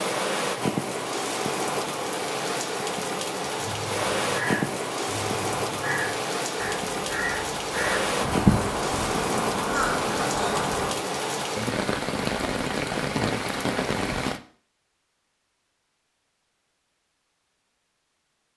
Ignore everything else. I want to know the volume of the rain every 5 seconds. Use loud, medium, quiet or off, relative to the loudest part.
loud, loud, loud, off.